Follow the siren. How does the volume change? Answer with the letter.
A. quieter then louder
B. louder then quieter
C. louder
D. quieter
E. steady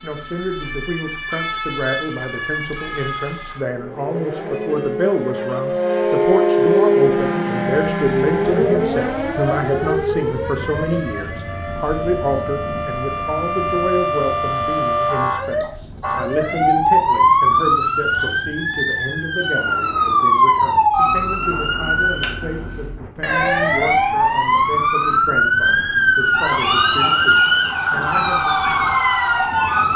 C.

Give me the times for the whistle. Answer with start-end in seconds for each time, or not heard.
26.6-27.9.